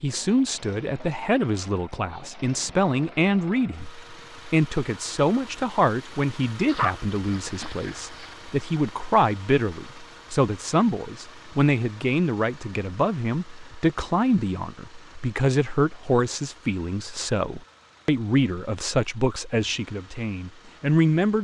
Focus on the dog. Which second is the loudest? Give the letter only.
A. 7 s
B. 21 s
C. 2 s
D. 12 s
A.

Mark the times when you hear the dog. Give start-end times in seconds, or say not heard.
6.7-8.3.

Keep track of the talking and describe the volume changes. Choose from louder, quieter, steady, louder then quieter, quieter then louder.
steady.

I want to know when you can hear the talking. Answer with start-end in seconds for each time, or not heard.
0.0-21.3.